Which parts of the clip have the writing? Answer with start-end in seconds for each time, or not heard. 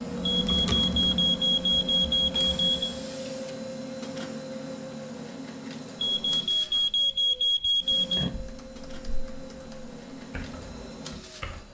not heard.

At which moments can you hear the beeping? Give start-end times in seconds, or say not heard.
0.2-2.8, 6.0-8.3.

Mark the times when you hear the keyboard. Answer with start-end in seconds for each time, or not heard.
0.0-2.9, 7.8-11.6.